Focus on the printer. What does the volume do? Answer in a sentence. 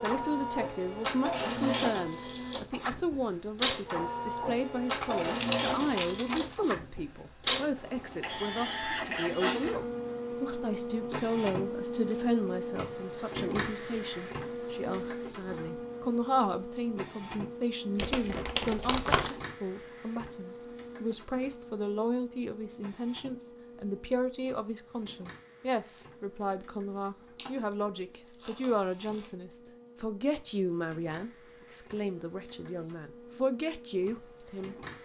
The volume of the printer goes down.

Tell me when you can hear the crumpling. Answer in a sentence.
You can hear the crumpling from 5.0 to 6.6 s, from 17.9 to 19.3 s and from 27.4 to 29.3 s.